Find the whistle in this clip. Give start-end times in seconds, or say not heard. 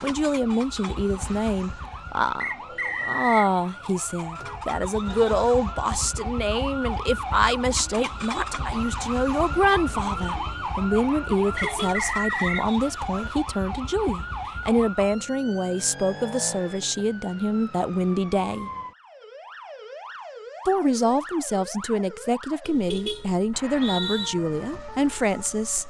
2.4-3.5, 11.6-12.7, 23.5-24.3.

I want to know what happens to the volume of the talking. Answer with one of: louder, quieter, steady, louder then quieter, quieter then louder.
steady.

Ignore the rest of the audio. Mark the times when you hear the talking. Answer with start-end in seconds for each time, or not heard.
0.0-18.7, 20.6-25.8.